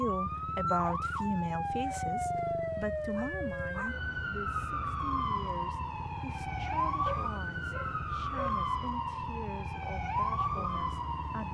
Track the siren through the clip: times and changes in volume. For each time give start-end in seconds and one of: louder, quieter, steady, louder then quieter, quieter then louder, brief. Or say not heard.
0.0-11.5 steady.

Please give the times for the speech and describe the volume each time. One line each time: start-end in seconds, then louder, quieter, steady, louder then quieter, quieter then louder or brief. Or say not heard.
0.0-11.5 quieter.